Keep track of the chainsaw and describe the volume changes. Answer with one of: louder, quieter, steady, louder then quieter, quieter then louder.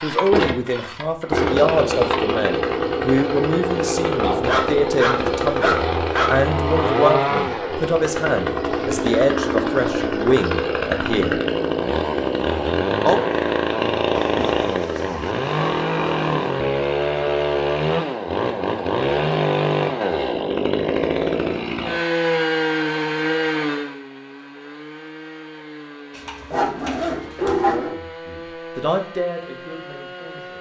quieter.